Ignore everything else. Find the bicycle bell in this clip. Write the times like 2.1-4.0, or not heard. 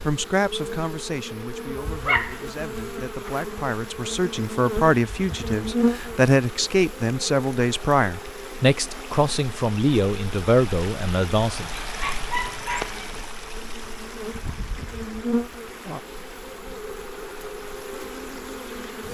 not heard.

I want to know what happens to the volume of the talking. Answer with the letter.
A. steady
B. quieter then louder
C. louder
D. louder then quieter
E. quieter
C.